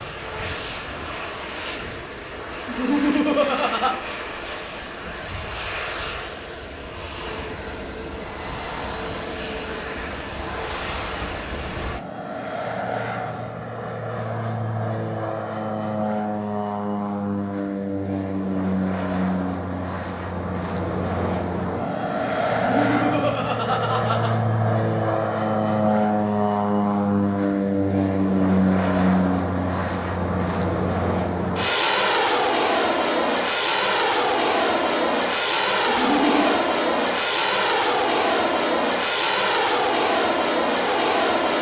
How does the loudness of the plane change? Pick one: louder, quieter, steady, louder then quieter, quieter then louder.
louder.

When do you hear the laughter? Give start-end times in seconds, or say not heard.
2.6-3.9, 22.5-24.3, 35.9-36.6.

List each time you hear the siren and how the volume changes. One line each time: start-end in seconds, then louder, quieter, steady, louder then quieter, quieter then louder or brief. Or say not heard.
not heard.